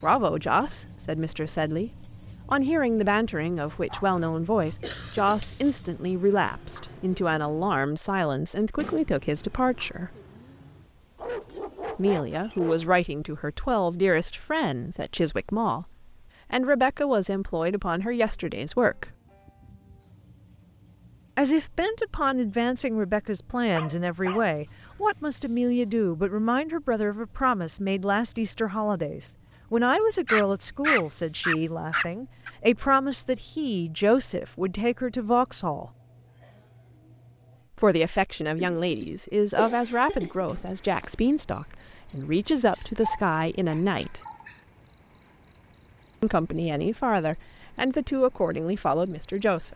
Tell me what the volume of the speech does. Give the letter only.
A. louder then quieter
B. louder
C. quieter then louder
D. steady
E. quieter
D.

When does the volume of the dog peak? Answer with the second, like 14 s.
31 s.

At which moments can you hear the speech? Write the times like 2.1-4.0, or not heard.
0.0-10.2, 11.9-19.1, 21.4-35.9, 37.8-44.2, 46.2-49.7.